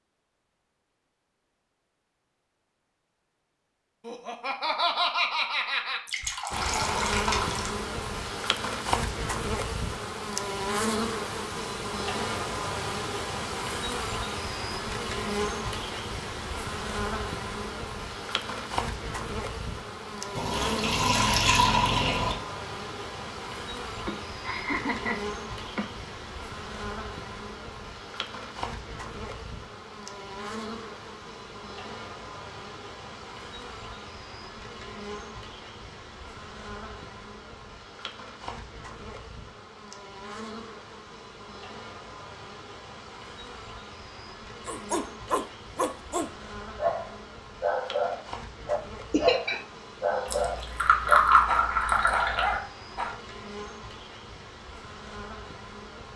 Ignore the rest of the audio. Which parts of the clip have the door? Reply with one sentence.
You can't hear the door here.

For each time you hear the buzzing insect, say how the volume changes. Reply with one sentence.
The buzzing insect can be heard from 6.5 to 56.1 s, getting quieter.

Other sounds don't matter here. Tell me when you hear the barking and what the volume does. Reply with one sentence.
You can hear the barking from 44.6 to 53.2 s, at a steady volume.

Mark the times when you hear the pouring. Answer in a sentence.
The pouring can be heard from 6.0 to 7.7 s, from 20.4 to 22.4 s and from 50.2 to 52.6 s.